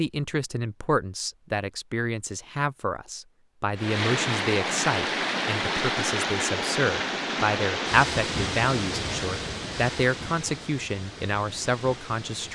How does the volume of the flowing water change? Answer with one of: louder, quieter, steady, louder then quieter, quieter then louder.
quieter.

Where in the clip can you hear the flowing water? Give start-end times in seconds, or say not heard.
3.8-12.5.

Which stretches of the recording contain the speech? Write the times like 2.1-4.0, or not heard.
0.0-12.5.